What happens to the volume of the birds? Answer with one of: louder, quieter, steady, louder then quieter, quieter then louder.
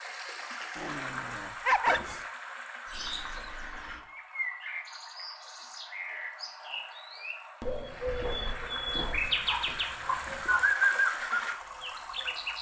louder.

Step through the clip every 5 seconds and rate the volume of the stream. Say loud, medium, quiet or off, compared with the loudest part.
loud, medium, loud.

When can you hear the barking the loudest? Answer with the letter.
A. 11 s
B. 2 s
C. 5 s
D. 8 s
B.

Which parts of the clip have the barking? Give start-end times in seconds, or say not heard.
0.8-2.2, 8.9-10.7.